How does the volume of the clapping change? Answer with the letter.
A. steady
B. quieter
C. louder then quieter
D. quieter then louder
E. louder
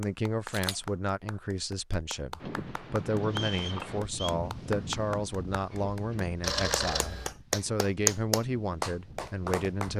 E.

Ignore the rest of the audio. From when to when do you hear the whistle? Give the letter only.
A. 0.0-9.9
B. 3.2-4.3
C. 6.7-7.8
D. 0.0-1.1
B.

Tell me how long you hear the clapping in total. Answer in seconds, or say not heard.
10 s.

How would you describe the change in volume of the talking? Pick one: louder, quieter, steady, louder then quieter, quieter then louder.
steady.